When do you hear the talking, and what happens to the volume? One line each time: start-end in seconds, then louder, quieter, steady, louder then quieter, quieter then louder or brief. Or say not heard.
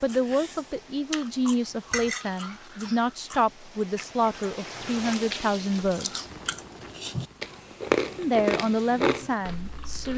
0.0-6.2 steady
8.2-10.1 brief.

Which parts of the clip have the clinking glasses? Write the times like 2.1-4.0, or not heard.
1.9-3.1.